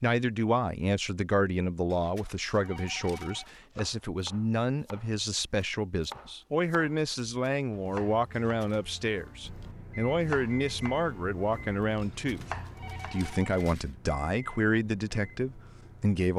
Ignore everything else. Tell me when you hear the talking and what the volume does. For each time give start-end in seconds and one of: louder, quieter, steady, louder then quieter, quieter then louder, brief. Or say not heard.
0.0-16.3 steady.